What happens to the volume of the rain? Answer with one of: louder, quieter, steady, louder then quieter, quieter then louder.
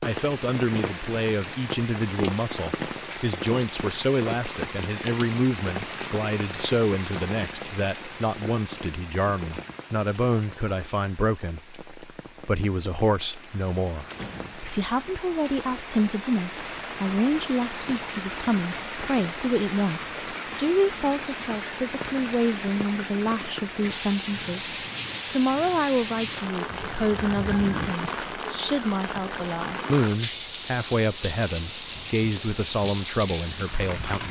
quieter then louder.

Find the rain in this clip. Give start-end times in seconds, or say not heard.
0.0-34.2.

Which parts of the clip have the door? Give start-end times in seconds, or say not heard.
14.1-14.8.